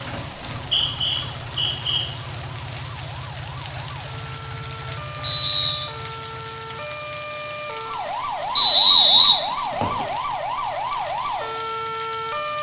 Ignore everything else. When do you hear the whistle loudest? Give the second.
9 s.